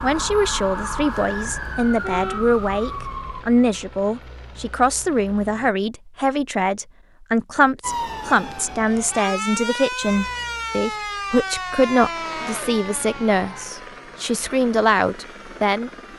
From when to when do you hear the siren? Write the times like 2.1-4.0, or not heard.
0.0-3.5, 7.8-16.1.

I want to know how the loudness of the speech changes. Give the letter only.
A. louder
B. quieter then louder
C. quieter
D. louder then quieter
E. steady
E.